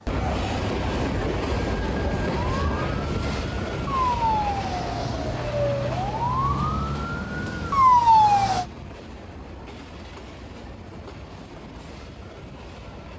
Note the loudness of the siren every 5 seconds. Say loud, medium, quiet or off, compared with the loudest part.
medium, loud, off.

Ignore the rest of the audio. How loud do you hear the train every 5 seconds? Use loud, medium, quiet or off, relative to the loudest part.
loud, medium, quiet.